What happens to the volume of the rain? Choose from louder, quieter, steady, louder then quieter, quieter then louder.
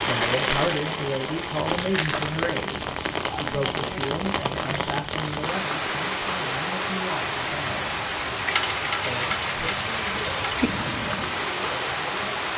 steady.